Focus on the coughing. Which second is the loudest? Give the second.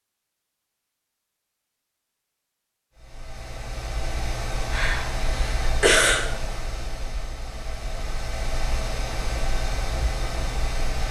6 s.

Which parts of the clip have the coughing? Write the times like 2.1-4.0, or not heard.
4.7-6.2.